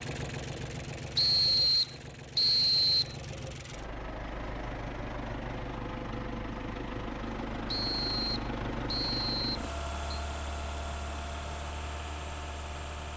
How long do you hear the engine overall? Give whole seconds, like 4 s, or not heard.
13 s.